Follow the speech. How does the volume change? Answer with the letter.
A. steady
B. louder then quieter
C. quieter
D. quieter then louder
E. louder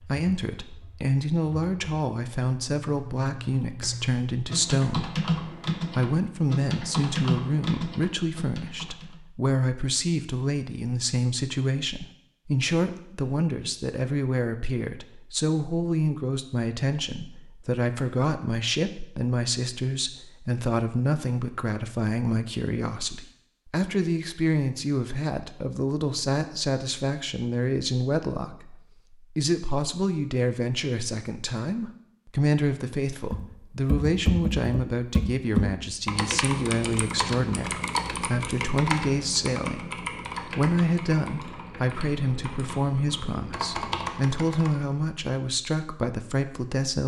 A.